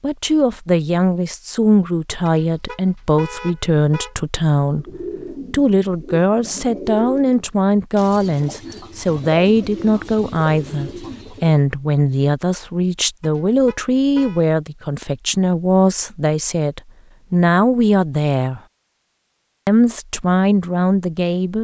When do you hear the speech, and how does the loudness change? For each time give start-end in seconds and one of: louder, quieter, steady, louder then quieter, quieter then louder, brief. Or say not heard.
0.0-18.6 steady
19.6-21.5 brief.